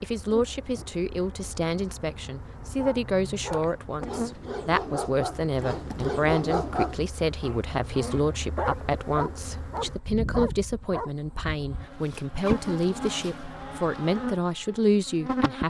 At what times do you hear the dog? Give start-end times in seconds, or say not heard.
2.8-11.2.